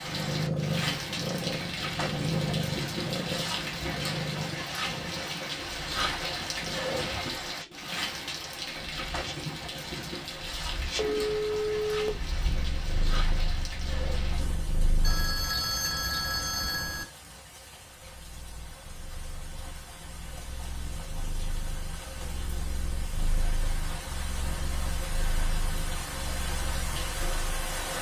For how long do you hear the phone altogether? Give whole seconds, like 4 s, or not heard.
3 s.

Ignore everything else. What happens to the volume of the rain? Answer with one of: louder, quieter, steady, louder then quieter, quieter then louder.
quieter then louder.